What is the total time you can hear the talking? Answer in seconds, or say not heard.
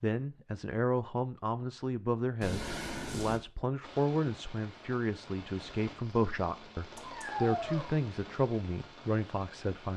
10 s.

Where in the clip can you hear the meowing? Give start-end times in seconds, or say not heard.
2.4-3.4, 7.0-7.8.